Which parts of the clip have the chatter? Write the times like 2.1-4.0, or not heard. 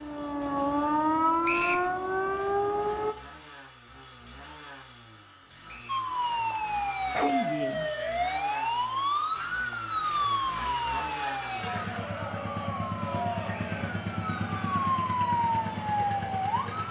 6.0-16.6.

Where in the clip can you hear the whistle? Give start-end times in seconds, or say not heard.
1.4-1.9, 5.7-6.1, 13.5-13.9.